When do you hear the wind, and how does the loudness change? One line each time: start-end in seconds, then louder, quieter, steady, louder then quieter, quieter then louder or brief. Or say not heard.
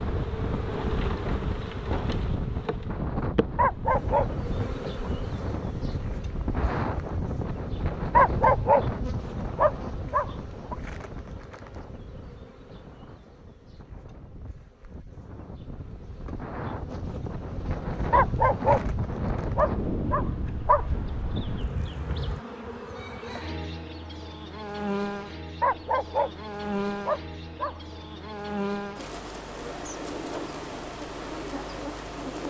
0.0-22.4 quieter then louder.